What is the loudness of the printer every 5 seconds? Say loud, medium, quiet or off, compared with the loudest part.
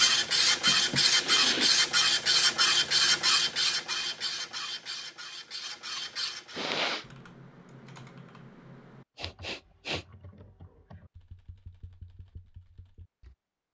loud, quiet, off.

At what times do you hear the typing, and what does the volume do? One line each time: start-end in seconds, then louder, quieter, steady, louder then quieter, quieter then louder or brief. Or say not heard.
7.0-13.3 quieter.